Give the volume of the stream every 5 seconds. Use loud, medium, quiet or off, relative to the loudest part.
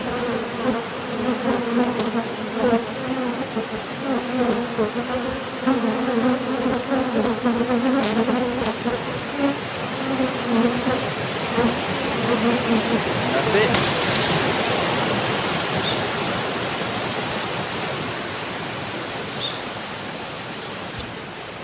medium, medium, loud, loud, medium.